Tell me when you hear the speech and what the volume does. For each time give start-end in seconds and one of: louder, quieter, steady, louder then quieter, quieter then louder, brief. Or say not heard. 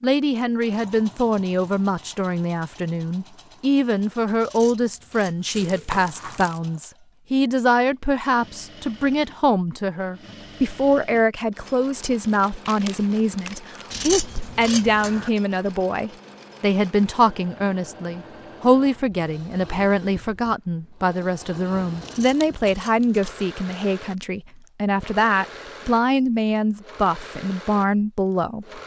0.0-28.8 steady.